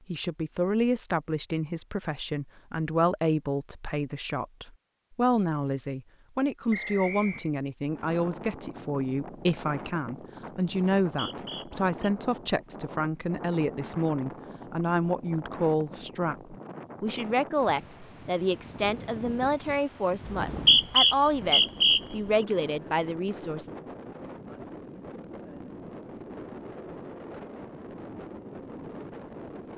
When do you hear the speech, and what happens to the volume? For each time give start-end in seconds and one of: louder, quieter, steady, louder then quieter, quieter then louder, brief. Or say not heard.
0.1-23.8 steady.